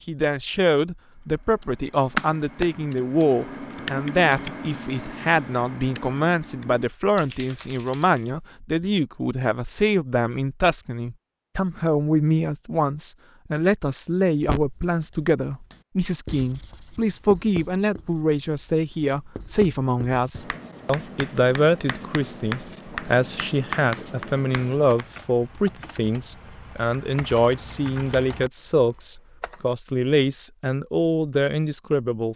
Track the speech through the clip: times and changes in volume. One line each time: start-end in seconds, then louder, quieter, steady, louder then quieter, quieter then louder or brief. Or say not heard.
0.1-32.3 steady.